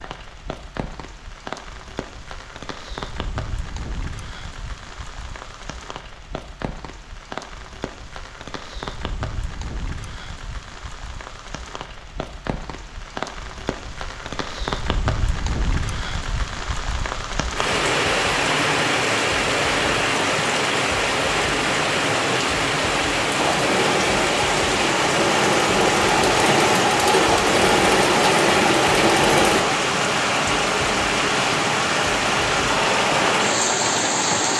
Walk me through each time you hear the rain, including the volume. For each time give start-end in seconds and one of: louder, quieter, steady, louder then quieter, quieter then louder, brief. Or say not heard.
0.0-34.5 louder.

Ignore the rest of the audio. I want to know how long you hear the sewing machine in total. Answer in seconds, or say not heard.
8 s.